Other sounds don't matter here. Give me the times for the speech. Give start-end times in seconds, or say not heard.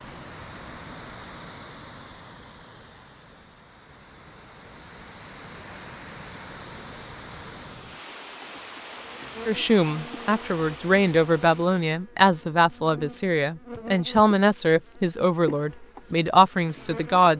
9.4-17.3.